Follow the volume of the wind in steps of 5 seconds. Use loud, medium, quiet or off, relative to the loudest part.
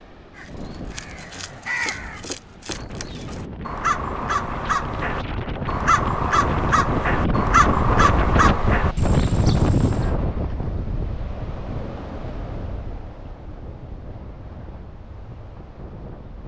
quiet, loud, medium, quiet.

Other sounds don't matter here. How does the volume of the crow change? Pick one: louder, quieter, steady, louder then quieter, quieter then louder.
louder.